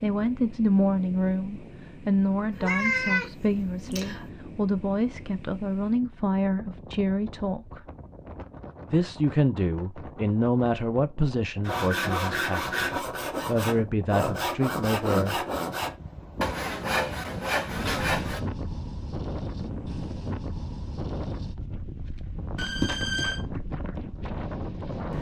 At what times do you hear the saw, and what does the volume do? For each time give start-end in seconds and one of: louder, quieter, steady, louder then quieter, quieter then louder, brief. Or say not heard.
11.7-18.4 steady.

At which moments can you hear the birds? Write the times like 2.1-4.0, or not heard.
not heard.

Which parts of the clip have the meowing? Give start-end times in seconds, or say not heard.
2.5-4.2, 22.6-23.4.